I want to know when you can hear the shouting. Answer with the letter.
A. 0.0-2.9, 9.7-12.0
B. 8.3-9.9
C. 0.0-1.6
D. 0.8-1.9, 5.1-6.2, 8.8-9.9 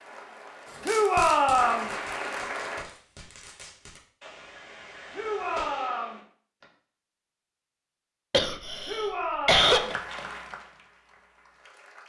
D.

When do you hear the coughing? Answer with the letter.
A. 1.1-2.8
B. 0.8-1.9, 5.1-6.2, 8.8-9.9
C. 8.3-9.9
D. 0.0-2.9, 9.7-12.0
C.